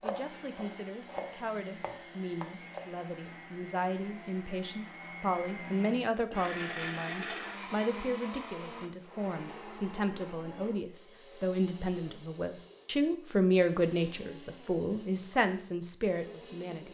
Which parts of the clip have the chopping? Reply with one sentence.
The chopping can be heard from 0.0 to 2.9 s.